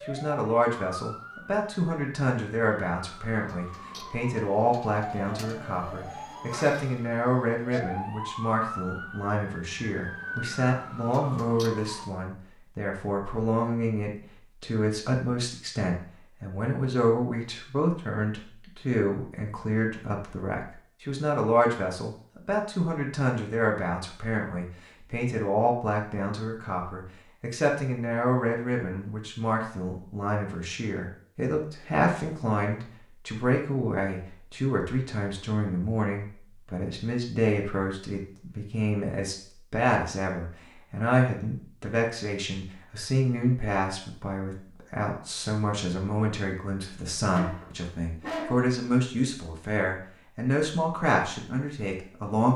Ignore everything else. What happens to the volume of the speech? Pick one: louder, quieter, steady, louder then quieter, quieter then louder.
steady.